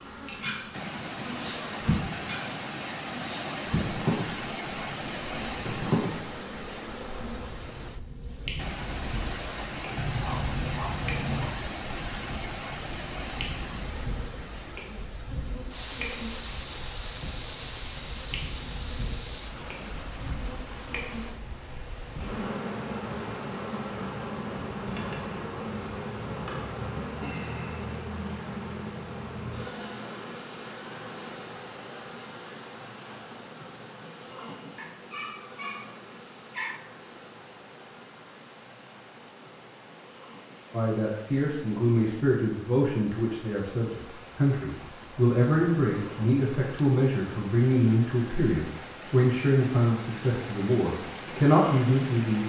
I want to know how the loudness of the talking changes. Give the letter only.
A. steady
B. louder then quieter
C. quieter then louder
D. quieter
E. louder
A.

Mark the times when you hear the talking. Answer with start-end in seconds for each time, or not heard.
40.7-52.4.